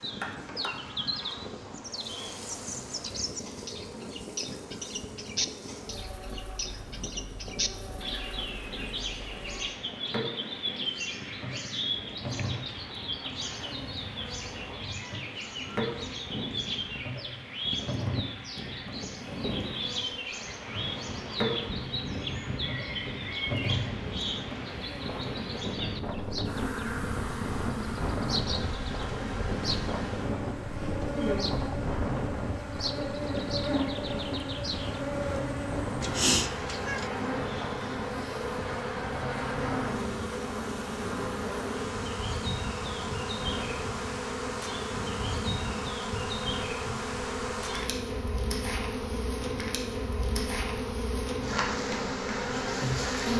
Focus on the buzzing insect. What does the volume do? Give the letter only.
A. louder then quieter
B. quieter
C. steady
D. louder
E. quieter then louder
D.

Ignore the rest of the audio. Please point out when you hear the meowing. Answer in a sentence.
You can hear the meowing from 36.0 to 37.1 s.